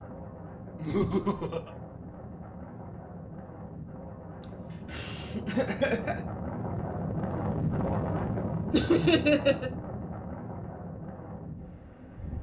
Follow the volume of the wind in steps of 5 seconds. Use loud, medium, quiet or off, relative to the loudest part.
medium, loud, medium.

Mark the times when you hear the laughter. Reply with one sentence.
The laughter can be heard from 0.8 to 1.7 s, from 4.4 to 6.2 s and from 8.7 to 9.7 s.